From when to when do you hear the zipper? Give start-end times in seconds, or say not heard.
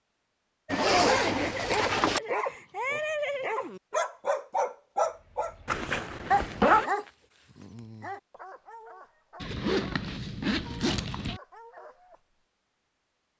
0.7-2.2, 5.7-6.9, 9.4-11.4.